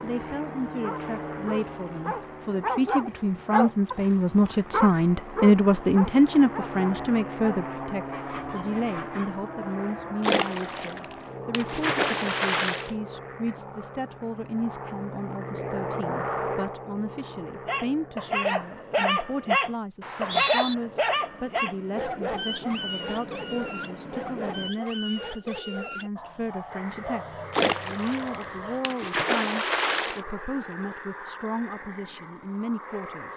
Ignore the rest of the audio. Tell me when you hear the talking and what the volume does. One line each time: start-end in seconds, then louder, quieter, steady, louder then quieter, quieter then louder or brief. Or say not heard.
0.0-33.3 quieter.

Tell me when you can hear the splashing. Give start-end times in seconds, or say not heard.
10.2-12.9, 27.5-30.2.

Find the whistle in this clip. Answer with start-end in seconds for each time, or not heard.
20.0-20.8.